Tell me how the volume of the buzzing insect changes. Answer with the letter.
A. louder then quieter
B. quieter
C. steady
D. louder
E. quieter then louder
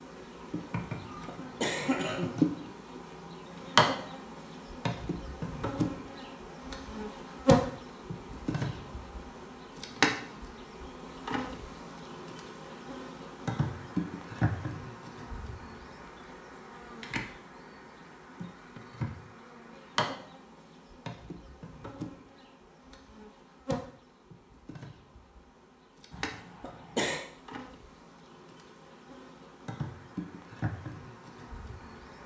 B.